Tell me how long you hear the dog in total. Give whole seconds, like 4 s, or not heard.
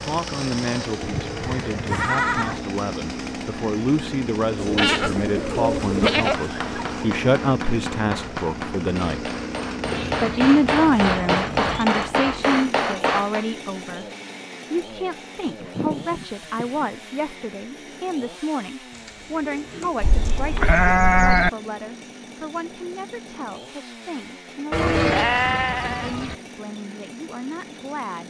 not heard.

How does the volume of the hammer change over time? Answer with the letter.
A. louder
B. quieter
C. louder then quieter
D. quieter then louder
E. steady
A.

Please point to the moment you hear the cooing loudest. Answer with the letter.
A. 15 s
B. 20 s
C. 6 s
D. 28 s
C.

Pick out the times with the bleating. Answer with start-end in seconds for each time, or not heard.
1.0-2.6, 4.8-7.0, 9.8-11.8, 15.4-16.9, 20.0-21.5, 24.7-26.4.